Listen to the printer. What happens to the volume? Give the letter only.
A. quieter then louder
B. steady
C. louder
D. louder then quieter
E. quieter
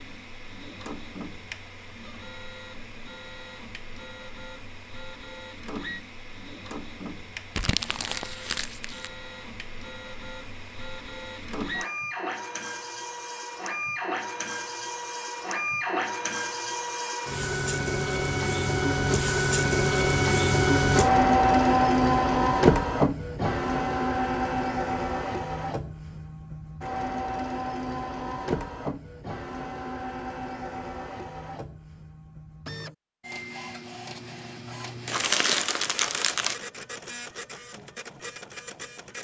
D.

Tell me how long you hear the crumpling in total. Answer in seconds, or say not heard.
3 s.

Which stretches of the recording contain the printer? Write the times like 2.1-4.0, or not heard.
0.0-39.2.